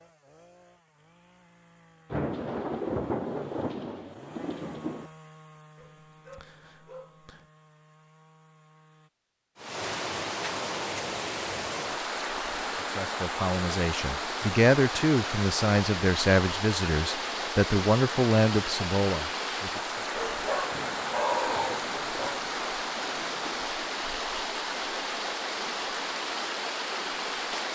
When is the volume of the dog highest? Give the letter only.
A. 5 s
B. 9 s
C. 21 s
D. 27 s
C.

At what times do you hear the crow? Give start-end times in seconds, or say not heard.
not heard.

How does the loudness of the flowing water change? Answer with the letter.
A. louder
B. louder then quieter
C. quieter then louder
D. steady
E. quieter
D.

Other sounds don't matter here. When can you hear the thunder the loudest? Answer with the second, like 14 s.
3 s.